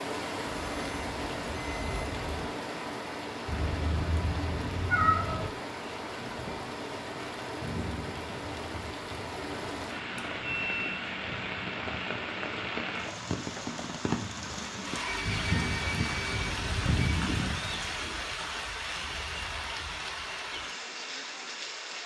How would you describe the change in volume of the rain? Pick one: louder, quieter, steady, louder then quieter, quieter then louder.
steady.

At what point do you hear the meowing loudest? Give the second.
5 s.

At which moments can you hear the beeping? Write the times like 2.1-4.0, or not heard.
0.5-2.5, 10.2-11.0, 15.1-17.1.